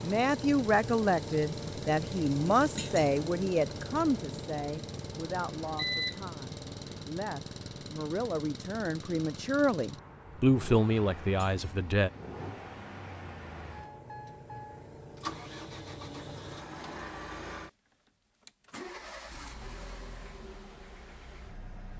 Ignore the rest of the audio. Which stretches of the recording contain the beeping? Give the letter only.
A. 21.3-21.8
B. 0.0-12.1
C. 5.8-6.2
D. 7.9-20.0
C.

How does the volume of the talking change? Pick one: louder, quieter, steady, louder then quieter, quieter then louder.
quieter then louder.